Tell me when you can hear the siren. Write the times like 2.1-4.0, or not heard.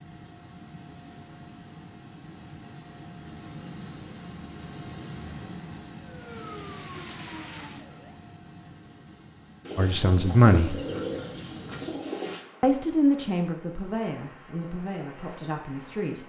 6.0-8.2.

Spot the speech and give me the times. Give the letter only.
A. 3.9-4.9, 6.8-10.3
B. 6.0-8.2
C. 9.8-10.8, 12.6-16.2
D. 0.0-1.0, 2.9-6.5
C.